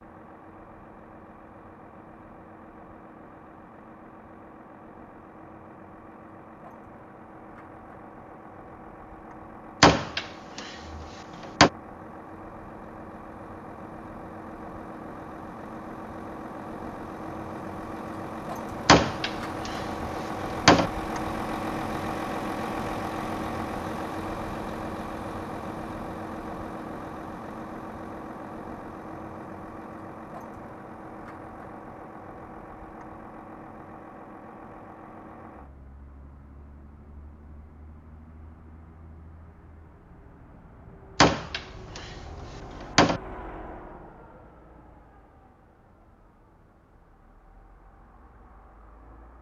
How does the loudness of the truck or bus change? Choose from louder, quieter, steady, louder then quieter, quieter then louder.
louder then quieter.